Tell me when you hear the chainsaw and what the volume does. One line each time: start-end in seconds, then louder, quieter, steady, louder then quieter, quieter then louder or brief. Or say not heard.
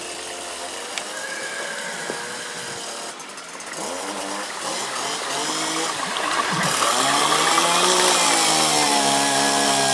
0.0-9.9 louder.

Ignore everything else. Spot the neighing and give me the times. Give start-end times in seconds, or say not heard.
1.1-2.8, 5.8-6.8.